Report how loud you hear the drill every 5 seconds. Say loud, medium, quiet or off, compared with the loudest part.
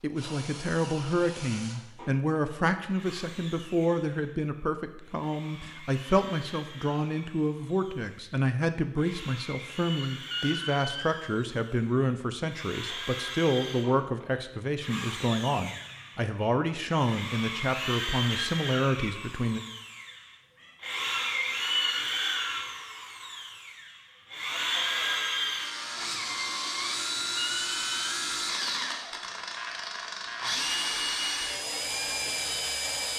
quiet, quiet, medium, medium, loud, loud, loud.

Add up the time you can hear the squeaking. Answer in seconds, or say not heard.
2 s.